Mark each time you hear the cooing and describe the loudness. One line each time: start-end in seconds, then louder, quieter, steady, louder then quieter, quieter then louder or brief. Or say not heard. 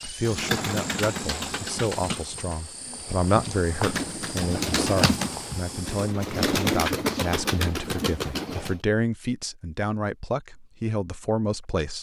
0.2-8.8 quieter then louder.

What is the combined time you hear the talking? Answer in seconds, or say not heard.
12 s.